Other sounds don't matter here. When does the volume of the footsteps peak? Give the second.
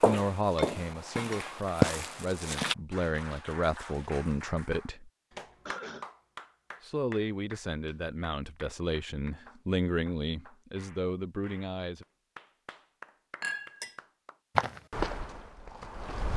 2 s.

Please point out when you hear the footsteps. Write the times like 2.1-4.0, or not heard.
0.0-2.8, 14.6-16.3.